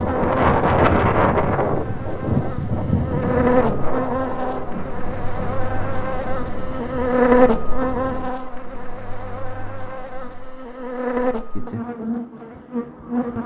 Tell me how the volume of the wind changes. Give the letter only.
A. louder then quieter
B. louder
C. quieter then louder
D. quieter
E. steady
D.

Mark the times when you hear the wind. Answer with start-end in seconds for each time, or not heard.
0.0-8.3.